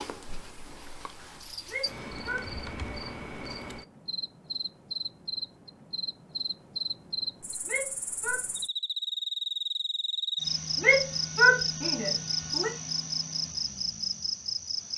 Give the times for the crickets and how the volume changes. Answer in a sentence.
The crickets can be heard from 0.0 to 14.9 s, getting louder.